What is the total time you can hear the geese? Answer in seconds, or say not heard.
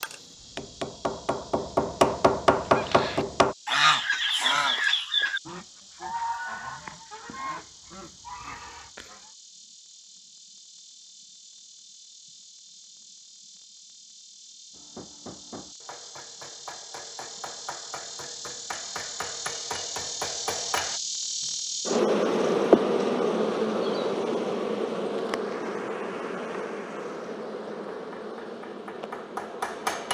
7 s.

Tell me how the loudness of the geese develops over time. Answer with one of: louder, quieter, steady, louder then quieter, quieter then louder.
quieter.